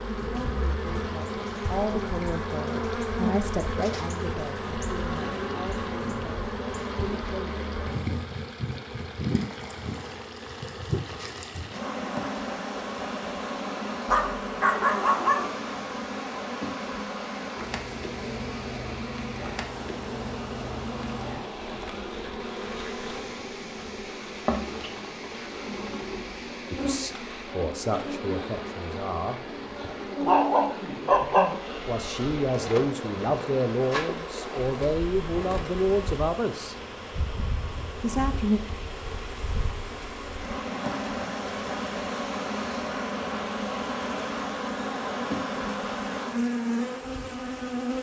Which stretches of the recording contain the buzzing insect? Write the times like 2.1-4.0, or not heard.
0.0-47.9.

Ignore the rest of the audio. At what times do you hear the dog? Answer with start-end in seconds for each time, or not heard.
14.1-15.5, 30.2-32.2.